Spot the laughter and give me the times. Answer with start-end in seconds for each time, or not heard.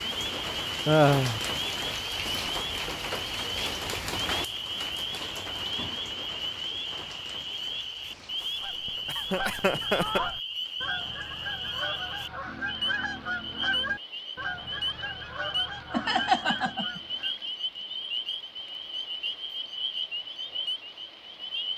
0.8-1.4, 9.1-10.2, 15.9-17.0.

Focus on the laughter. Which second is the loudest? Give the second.
1 s.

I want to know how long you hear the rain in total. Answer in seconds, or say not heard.
22 s.